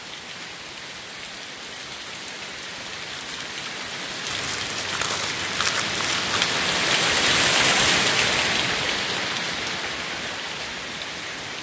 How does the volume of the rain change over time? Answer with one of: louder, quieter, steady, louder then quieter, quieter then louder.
louder then quieter.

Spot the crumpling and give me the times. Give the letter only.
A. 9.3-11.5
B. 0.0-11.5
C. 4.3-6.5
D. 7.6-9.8
C.